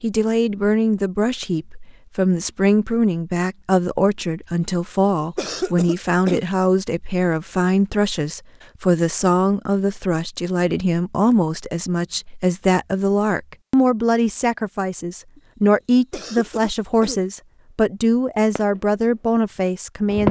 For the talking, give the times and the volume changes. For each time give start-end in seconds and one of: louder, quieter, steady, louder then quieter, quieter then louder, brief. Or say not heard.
0.0-20.2 steady.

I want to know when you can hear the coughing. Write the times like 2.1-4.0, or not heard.
4.6-6.5, 15.3-17.2.